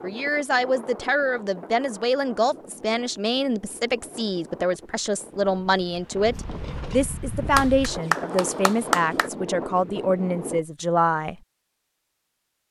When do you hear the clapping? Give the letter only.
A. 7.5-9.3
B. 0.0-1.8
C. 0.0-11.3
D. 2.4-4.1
A.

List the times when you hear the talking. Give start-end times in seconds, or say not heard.
0.0-11.3.